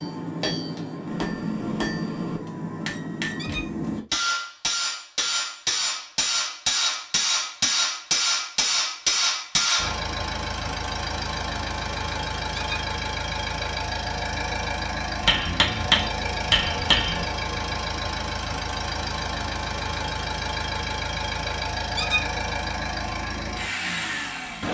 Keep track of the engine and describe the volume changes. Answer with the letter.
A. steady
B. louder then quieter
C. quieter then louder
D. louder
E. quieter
A.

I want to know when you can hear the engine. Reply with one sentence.
The engine can be heard from 9.8 to 24.6 s.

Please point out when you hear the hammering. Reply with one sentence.
The hammering can be heard from 0.0 to 9.9 s and from 15.2 to 17.2 s.